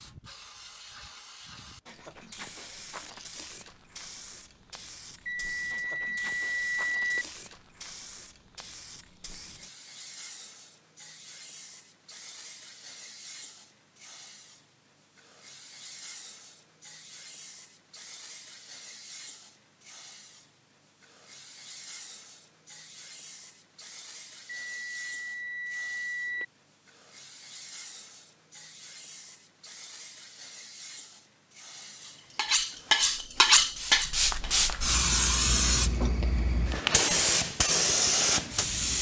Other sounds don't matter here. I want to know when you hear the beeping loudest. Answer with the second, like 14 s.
7 s.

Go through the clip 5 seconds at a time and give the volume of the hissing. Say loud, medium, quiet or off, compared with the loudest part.
quiet, quiet, quiet, quiet, quiet, quiet, medium, loud.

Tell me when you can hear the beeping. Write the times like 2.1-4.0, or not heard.
5.2-7.2, 24.5-26.4.